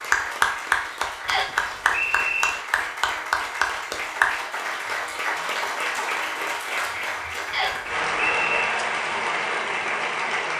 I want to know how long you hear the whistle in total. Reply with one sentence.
You can hear the whistle for 2 seconds altogether.